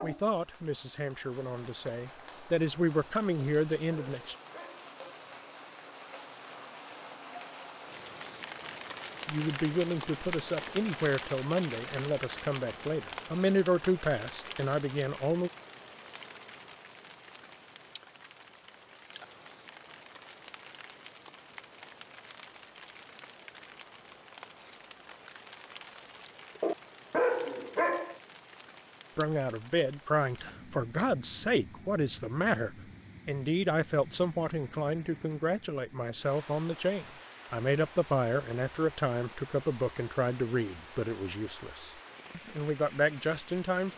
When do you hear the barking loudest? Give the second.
27 s.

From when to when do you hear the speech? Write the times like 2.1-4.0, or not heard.
0.0-4.3, 9.2-15.5, 29.1-43.9.